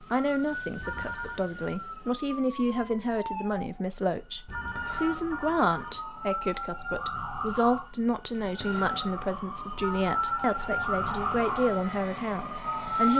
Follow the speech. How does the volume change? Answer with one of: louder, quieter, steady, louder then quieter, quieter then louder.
steady.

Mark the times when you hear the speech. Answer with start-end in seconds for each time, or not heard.
0.0-13.1.